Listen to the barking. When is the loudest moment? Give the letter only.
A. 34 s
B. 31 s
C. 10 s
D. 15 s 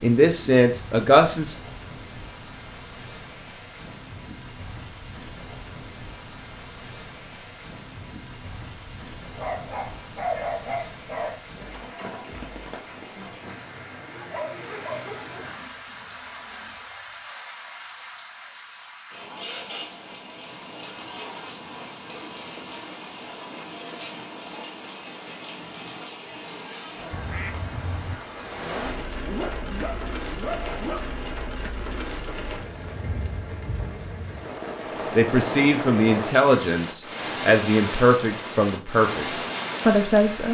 C.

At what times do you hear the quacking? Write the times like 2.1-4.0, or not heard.
27.1-28.1.